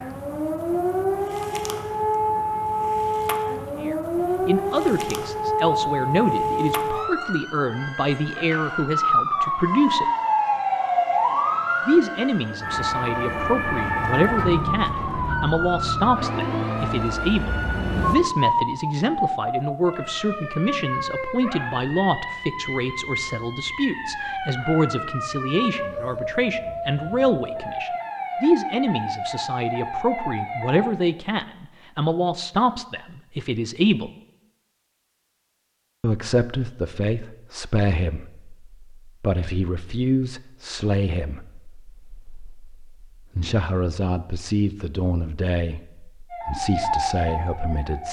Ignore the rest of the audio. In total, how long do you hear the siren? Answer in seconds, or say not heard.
33 s.